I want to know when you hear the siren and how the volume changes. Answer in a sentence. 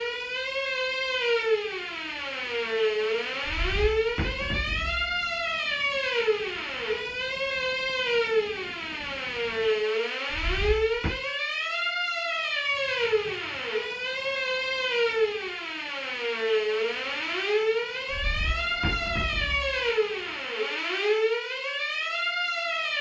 You can hear the siren from 0.0 to 22.9 s, at a steady volume.